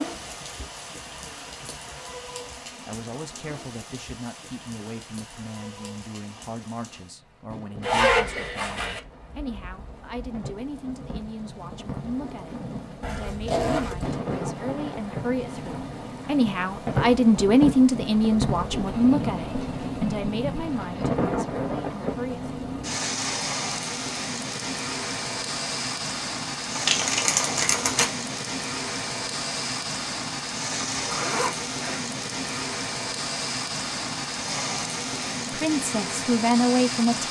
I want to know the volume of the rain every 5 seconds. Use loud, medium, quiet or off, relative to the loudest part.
medium, quiet, medium, loud, loud, loud, loud, loud.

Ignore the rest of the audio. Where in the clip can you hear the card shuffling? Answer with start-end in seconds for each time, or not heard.
26.8-28.1.